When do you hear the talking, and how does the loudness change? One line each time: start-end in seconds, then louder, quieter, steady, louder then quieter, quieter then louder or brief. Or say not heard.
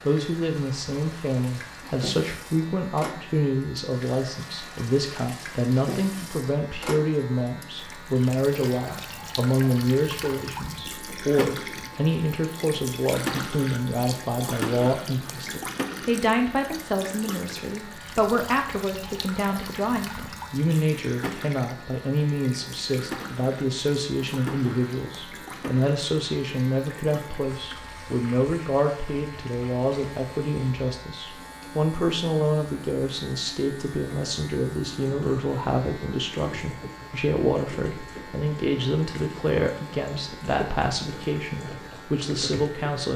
0.0-43.1 steady.